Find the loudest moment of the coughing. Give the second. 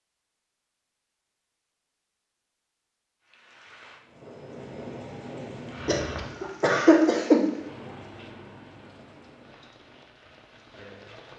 7 s.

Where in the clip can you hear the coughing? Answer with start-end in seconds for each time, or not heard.
5.8-7.5.